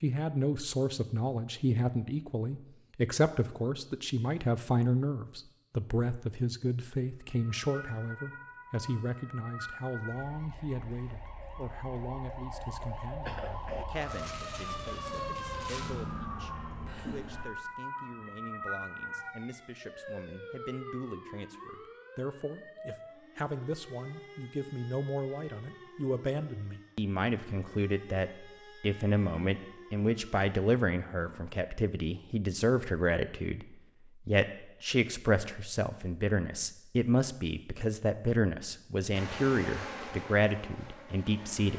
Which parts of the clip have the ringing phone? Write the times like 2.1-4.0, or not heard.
not heard.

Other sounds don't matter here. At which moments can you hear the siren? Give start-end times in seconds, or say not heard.
7.2-31.6.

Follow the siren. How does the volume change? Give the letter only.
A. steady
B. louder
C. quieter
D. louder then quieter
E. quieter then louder
D.